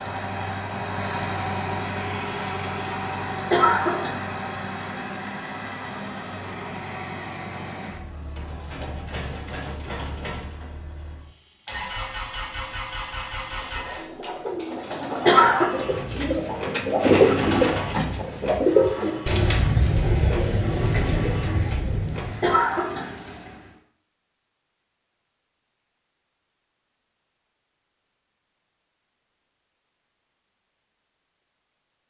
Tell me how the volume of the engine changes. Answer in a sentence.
The volume of the engine goes down.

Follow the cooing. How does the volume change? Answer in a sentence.
The volume of the cooing goes up, then down.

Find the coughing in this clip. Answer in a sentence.
The coughing can be heard from 3.5 to 4.2 s, from 15.2 to 15.8 s and from 22.4 to 23.1 s.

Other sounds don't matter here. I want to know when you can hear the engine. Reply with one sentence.
The engine can be heard from 0.0 to 23.8 s.